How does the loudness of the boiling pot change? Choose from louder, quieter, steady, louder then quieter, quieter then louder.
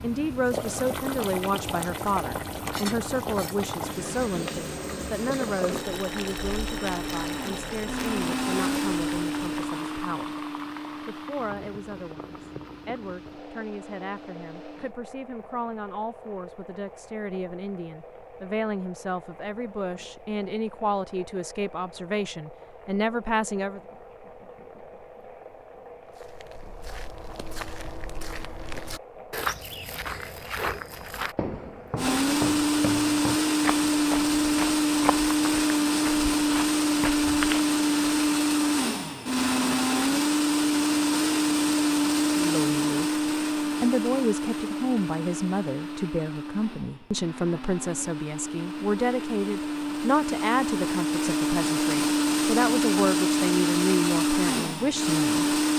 quieter.